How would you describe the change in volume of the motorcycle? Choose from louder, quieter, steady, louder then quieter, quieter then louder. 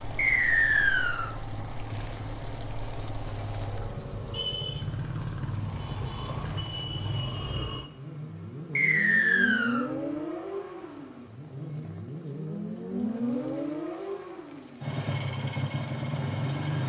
louder.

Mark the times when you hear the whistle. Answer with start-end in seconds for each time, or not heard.
0.1-1.3, 8.8-9.8.